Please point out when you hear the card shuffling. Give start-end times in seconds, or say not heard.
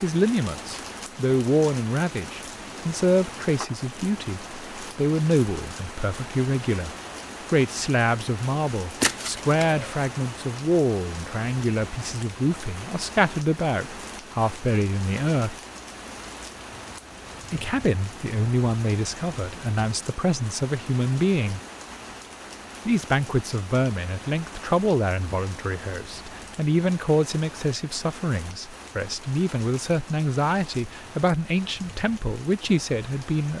9.0-10.1.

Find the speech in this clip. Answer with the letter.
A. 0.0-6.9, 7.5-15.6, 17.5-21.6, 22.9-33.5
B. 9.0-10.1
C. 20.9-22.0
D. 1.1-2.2
A.